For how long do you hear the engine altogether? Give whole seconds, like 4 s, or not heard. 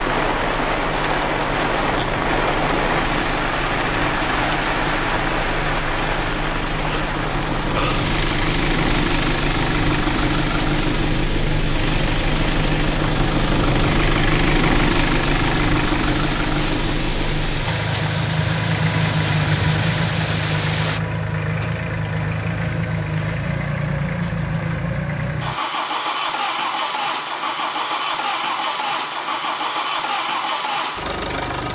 32 s.